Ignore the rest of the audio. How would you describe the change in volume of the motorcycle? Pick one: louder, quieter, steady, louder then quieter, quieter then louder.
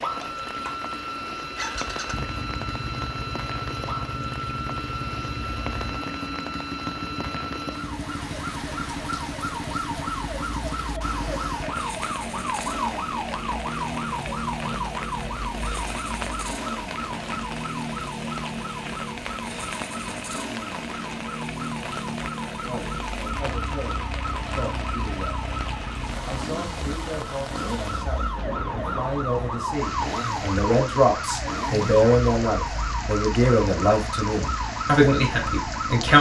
steady.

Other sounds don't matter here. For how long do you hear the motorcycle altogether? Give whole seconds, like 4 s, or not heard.
36 s.